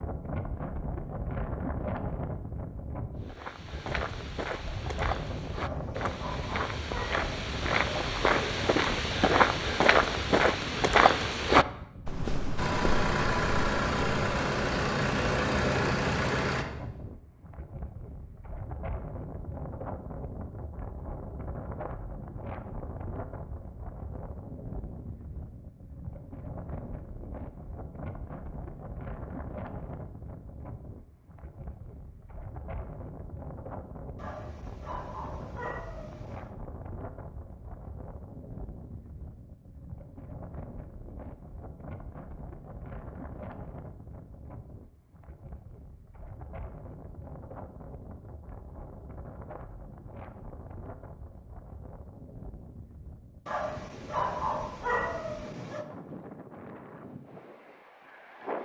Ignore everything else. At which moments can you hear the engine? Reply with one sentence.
The engine can be heard from 12.6 to 16.6 s.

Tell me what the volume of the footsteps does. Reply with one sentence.
The volume of the footsteps goes up.